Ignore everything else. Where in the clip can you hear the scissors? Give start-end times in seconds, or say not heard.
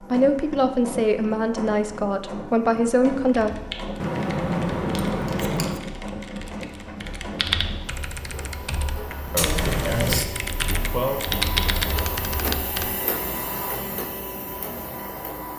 4.0-5.8, 9.3-10.2.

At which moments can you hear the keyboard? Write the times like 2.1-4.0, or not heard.
3.2-12.9.